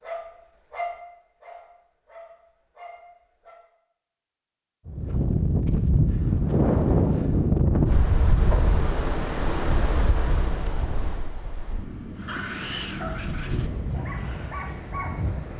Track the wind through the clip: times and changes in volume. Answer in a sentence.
You can hear the wind from 4.8 to 15.5 s, getting quieter.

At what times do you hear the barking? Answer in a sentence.
You can hear the barking from 0.0 to 3.5 s and from 12.2 to 15.3 s.